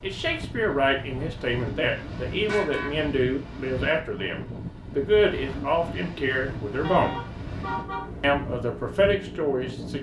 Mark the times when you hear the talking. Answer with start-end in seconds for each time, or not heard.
0.0-7.2, 8.2-9.9.